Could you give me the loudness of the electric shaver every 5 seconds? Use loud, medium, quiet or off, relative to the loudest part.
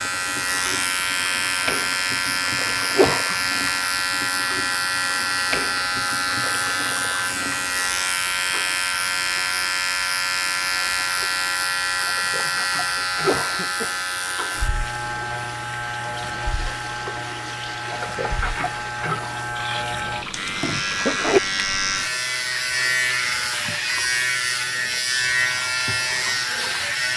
loud, loud, loud, medium, loud, loud.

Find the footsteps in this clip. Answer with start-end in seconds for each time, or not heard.
not heard.